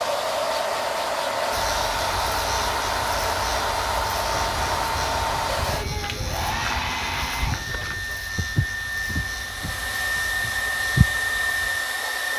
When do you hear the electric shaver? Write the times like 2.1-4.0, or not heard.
1.5-12.3.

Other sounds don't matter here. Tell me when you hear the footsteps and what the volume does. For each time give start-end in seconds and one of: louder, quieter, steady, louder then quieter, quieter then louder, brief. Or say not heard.
4.2-11.2 louder then quieter.